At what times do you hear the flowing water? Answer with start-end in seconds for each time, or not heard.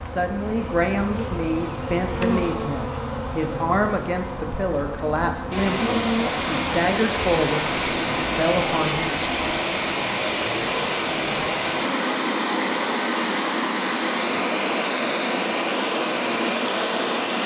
5.5-17.4.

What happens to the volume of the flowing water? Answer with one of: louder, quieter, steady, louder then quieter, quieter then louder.
steady.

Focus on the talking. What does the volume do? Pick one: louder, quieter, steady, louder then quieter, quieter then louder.
steady.